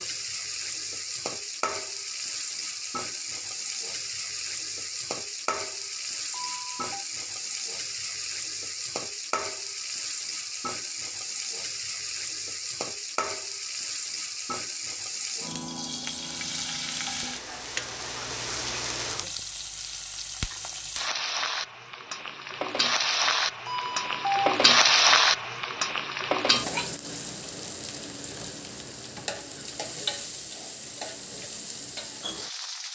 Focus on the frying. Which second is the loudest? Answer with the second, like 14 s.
25 s.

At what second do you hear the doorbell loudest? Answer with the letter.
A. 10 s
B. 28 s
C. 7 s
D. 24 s
D.